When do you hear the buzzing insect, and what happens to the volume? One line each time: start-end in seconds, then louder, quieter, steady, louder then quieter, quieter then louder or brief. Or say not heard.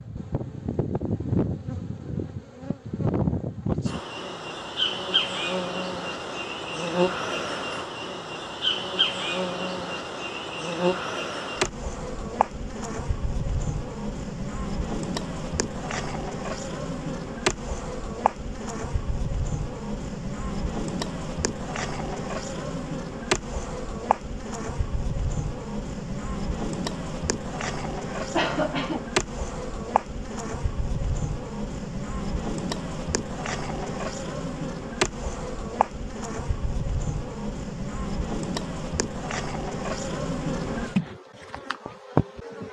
0.0-42.6 steady.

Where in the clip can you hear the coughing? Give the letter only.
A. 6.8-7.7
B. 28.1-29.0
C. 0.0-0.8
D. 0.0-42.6
B.